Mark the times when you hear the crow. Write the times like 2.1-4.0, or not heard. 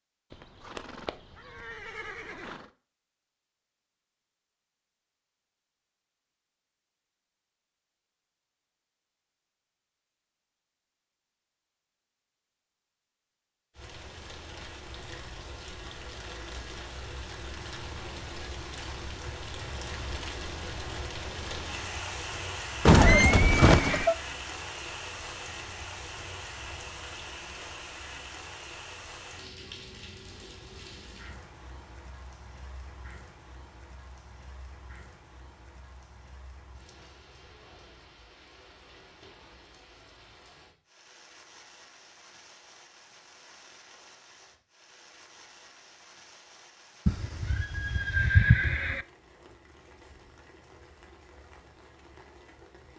not heard.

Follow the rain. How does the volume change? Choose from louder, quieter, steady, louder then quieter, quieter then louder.
quieter.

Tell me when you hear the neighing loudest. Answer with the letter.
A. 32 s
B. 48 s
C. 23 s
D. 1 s
C.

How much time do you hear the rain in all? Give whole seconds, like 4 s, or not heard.
39 s.